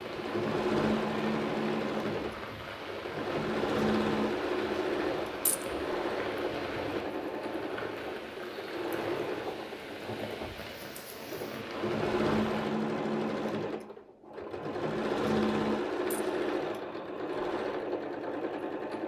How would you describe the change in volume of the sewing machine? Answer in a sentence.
The volume of the sewing machine goes down, then up.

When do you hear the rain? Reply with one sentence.
You can hear the rain from 0.0 to 12.7 s.